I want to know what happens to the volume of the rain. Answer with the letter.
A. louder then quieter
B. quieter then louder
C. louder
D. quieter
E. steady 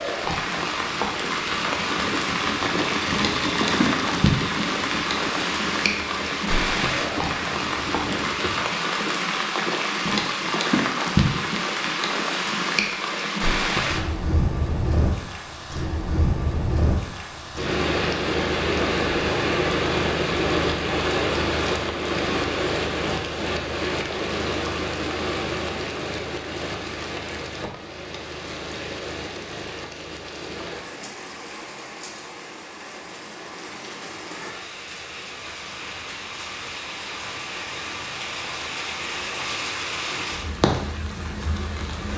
D.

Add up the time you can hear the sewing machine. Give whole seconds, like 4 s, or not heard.
9 s.